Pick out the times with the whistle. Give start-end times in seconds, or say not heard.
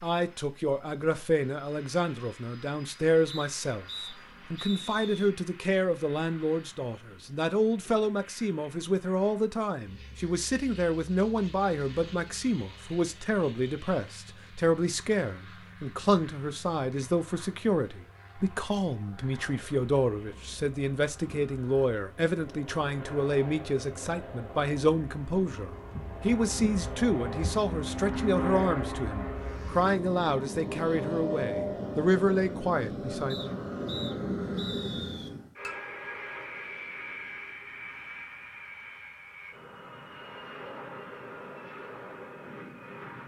3.3-5.3, 33.3-35.3.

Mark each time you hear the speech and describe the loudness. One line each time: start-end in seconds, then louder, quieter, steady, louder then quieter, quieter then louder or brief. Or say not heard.
0.0-33.5 steady.